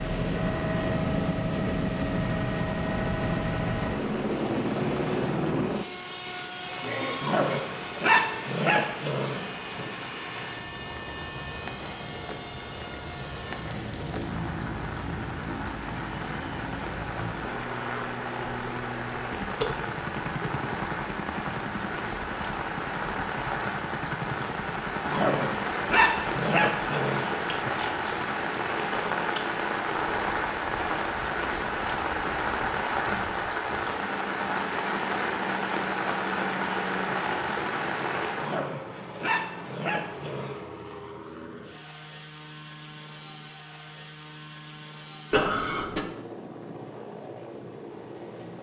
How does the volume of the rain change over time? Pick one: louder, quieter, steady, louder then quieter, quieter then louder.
louder.